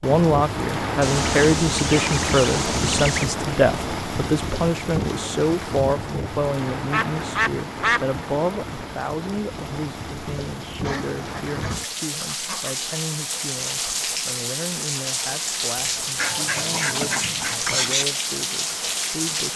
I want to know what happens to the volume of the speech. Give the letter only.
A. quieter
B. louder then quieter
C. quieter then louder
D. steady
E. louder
A.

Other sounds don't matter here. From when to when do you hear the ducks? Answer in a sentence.
The ducks can be heard from 1.0 to 3.4 s, from 6.9 to 8.1 s, from 10.8 to 12.8 s and from 16.1 to 18.1 s.